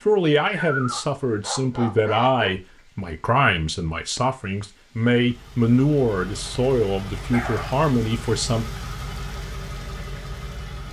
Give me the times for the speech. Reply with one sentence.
The speech can be heard from 0.1 to 8.7 s.